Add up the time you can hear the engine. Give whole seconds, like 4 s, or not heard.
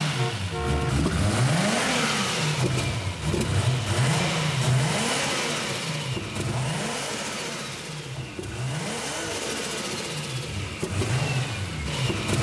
12 s.